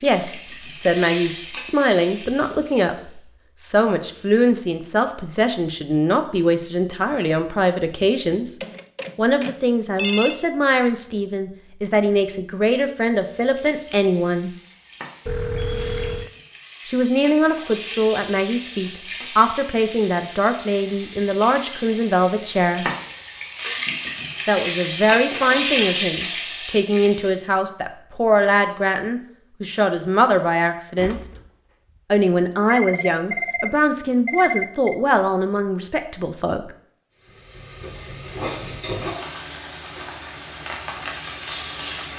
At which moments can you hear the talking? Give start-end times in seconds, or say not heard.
0.0-14.5, 16.9-22.9, 24.4-31.2, 32.1-36.6.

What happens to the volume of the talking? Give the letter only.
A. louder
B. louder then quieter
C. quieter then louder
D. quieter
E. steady
E.